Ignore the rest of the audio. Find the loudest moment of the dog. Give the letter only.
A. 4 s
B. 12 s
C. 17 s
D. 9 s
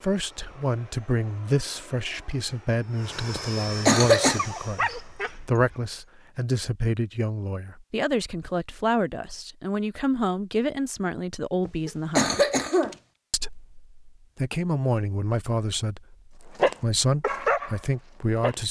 C.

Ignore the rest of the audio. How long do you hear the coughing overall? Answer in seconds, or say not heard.
2 s.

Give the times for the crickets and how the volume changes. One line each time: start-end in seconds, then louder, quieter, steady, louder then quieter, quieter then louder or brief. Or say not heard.
not heard.